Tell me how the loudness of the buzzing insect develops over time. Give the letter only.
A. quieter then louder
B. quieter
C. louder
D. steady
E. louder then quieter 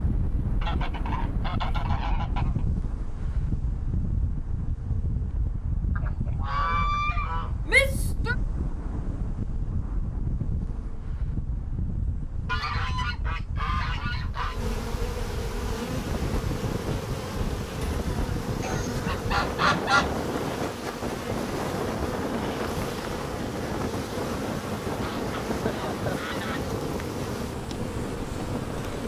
C.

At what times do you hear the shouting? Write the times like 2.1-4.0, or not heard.
7.7-8.3.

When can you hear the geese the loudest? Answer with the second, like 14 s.
20 s.